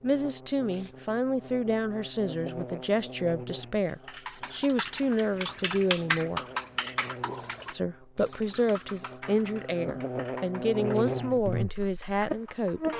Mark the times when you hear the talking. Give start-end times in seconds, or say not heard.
0.0-6.4, 7.7-12.8.